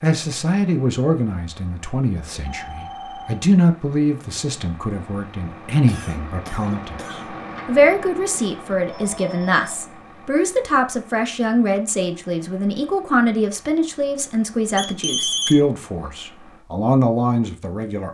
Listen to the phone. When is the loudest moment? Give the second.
15 s.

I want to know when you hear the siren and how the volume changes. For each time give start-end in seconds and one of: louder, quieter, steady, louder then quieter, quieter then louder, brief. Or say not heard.
not heard.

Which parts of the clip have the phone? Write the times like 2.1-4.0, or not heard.
2.3-3.5, 8.8-9.9, 14.8-15.6.